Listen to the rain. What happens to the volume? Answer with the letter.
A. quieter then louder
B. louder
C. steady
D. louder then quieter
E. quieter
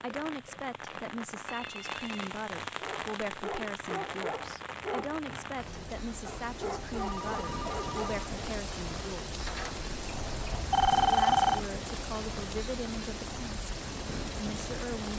C.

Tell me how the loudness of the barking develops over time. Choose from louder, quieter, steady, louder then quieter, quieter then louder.
quieter then louder.